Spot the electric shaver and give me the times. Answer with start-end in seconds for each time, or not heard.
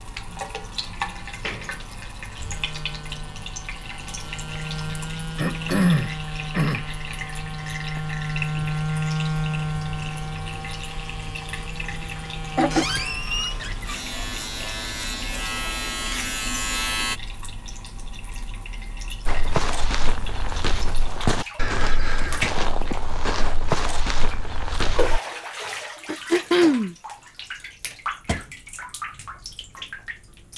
0.0-17.2.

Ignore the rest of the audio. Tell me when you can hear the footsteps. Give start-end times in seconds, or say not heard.
19.2-25.2.